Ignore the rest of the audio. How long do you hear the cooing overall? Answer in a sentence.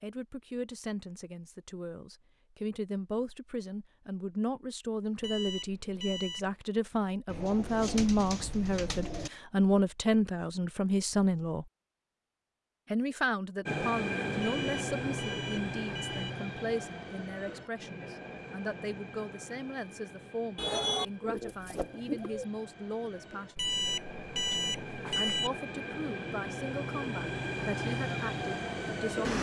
You can hear the cooing for 4 seconds altogether.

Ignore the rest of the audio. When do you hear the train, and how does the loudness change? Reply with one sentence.
The train can be heard from 13.7 to 29.3 s, getting quieter then louder.